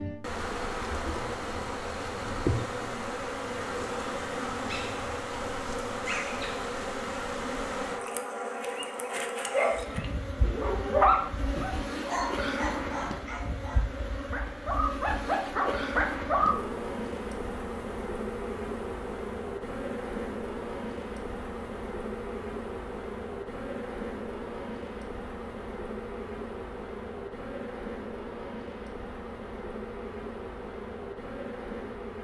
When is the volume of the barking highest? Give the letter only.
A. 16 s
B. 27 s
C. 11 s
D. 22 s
C.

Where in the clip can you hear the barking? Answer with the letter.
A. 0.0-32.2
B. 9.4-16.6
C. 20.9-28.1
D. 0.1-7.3
B.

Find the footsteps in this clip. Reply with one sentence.
The footsteps can't be heard in this clip.